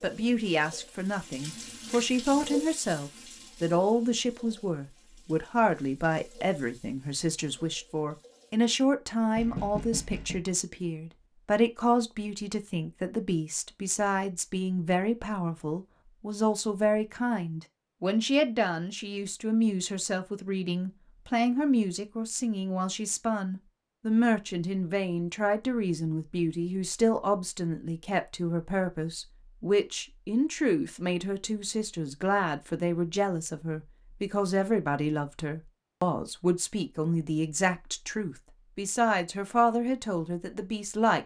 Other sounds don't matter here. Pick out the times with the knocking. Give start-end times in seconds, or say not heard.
9.3-10.4.